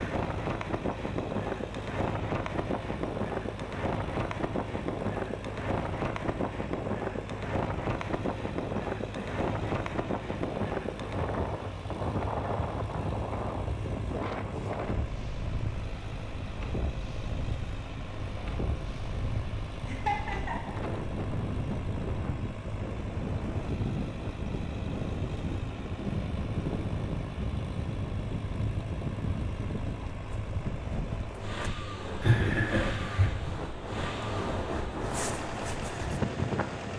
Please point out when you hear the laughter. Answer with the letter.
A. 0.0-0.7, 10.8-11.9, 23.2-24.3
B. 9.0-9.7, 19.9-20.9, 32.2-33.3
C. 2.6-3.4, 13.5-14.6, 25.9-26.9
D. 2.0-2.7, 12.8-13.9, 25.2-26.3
B.